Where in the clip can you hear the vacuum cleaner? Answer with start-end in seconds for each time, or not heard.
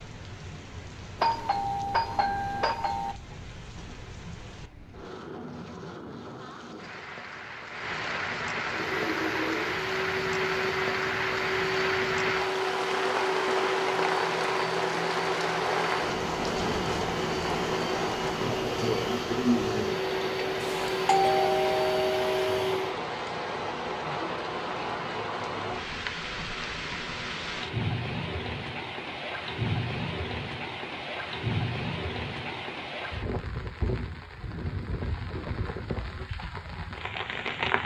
8.7-22.9.